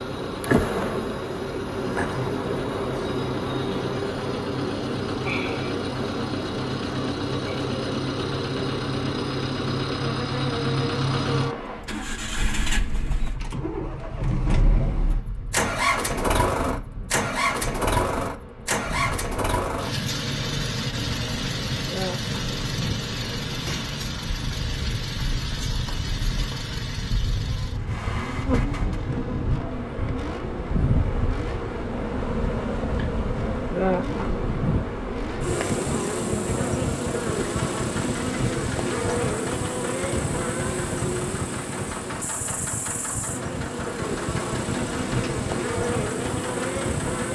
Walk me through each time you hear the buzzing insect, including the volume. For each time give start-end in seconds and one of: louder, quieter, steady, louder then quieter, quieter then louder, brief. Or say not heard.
0.0-47.2 quieter then louder.